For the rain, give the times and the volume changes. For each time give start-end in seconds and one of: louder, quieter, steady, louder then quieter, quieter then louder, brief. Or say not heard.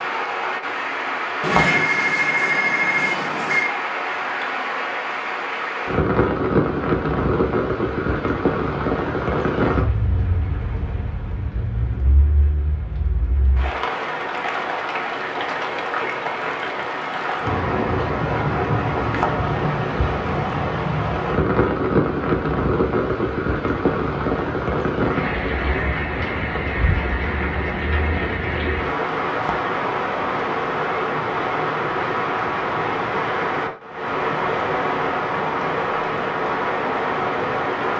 0.0-37.9 steady.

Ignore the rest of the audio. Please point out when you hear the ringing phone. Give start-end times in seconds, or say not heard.
1.4-3.7.